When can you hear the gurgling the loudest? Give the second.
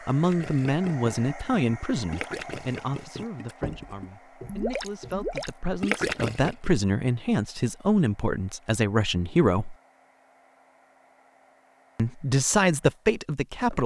6 s.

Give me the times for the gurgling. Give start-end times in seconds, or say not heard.
0.2-6.7.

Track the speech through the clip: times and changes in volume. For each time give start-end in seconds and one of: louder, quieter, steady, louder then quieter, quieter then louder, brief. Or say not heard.
0.1-9.8 quieter then louder
11.9-13.8 brief.